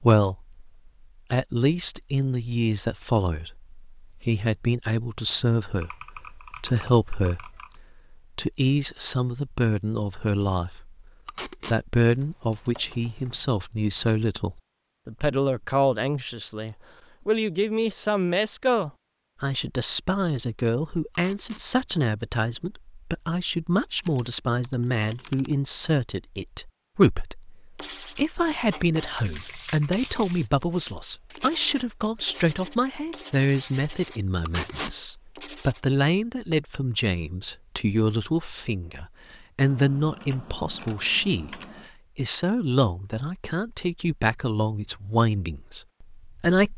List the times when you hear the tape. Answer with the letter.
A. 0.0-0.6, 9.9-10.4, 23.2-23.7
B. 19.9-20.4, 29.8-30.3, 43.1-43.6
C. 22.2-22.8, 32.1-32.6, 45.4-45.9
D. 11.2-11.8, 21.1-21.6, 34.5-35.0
D.